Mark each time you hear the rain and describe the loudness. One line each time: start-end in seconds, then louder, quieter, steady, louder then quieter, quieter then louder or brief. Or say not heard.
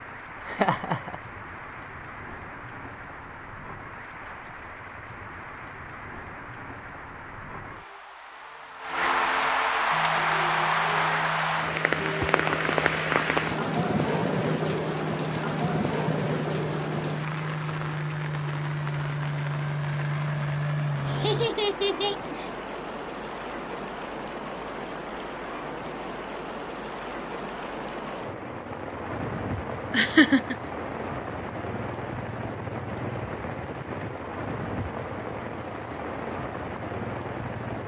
0.0-37.8 louder then quieter.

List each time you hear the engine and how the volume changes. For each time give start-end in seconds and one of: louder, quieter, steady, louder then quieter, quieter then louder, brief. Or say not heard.
9.9-21.5 louder.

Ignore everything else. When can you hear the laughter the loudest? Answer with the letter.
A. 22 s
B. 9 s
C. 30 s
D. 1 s
C.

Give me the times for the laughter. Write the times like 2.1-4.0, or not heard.
0.5-1.2, 21.1-22.5, 29.9-30.6.